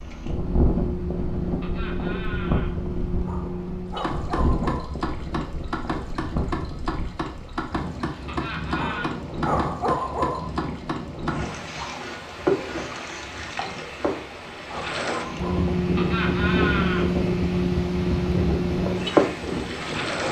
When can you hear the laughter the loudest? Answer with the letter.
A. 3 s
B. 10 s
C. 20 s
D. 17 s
D.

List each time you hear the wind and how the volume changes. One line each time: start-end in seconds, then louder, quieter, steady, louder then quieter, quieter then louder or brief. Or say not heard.
0.0-20.2 quieter then louder.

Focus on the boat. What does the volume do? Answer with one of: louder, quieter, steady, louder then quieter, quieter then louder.
louder.